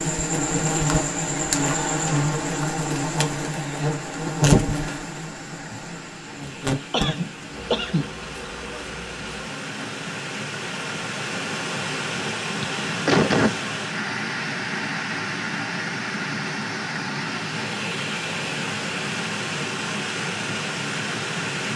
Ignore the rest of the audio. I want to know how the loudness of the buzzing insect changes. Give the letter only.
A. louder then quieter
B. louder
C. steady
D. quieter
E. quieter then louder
D.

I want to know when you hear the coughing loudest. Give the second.
13 s.